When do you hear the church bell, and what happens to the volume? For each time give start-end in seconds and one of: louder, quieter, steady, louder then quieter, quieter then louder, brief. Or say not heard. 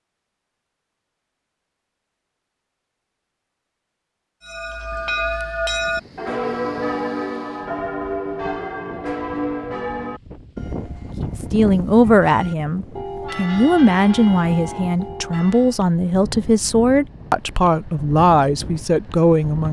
4.5-15.8 quieter.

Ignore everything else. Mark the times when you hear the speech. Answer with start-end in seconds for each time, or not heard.
11.2-19.6.